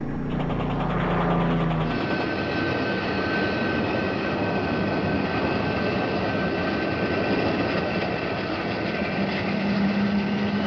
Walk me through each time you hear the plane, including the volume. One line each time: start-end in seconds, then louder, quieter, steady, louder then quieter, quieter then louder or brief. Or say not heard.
0.0-10.6 steady.